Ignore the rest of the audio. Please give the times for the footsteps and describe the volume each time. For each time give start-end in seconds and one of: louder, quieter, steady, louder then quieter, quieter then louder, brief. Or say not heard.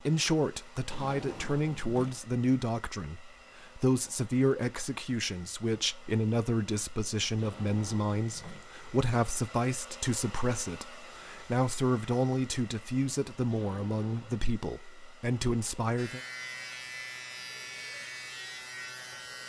not heard.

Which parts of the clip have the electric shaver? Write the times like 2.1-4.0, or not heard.
15.9-19.4.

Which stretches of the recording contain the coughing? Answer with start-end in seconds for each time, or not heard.
not heard.